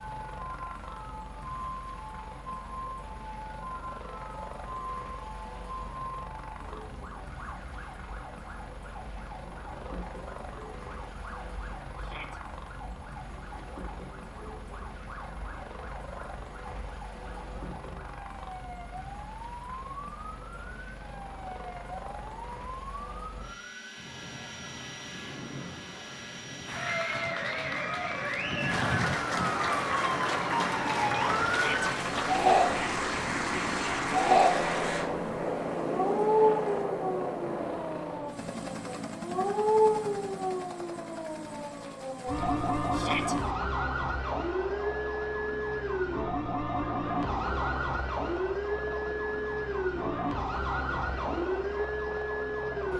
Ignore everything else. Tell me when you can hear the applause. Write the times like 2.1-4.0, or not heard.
26.6-36.9.